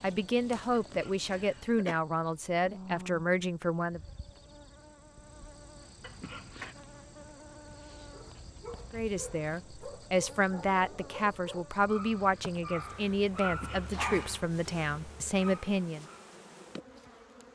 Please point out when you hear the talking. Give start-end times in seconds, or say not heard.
0.0-4.0, 8.9-16.1.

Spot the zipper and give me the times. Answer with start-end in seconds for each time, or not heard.
not heard.